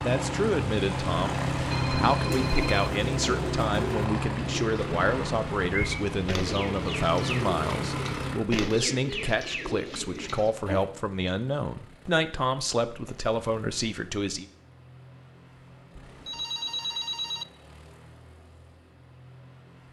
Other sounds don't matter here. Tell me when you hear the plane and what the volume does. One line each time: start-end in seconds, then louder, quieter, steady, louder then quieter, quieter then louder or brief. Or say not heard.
0.0-19.8 quieter.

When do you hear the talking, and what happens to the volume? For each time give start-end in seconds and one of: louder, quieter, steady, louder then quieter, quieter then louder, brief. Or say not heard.
0.0-14.4 steady.